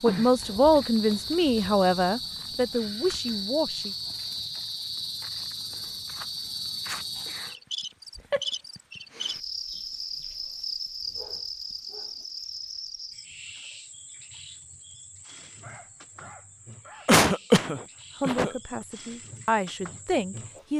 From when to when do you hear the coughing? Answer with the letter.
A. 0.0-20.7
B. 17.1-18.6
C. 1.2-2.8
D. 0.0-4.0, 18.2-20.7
B.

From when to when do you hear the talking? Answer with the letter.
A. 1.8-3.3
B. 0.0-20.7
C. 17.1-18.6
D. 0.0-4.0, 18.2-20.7
D.